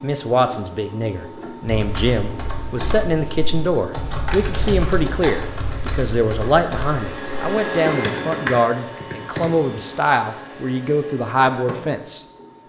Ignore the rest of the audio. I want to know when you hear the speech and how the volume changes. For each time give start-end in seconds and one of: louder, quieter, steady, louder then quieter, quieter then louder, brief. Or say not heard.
0.0-12.6 steady.